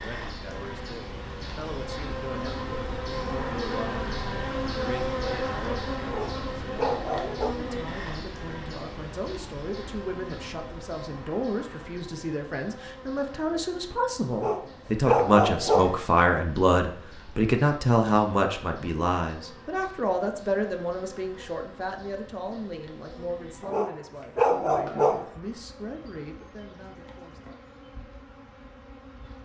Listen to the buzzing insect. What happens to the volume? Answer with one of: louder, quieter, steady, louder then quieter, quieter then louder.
quieter.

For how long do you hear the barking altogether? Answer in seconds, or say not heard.
5 s.